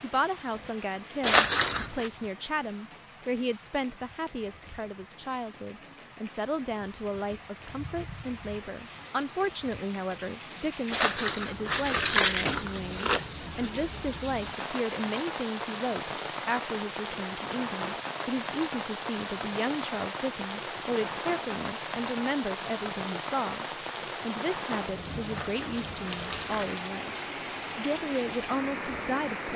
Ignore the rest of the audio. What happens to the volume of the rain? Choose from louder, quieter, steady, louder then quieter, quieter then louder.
louder.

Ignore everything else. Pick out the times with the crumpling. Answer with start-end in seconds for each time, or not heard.
1.2-2.1, 10.9-13.2, 25.2-26.8.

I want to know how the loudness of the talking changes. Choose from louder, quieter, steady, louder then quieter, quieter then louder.
steady.